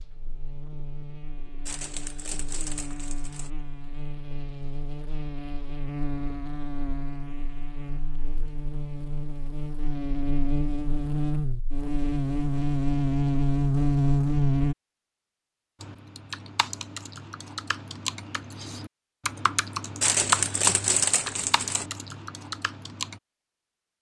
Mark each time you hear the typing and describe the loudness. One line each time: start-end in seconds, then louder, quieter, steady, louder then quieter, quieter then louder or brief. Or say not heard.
15.8-23.2 louder then quieter.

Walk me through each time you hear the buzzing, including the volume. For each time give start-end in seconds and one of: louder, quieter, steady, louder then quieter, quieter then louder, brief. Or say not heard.
0.0-14.8 louder.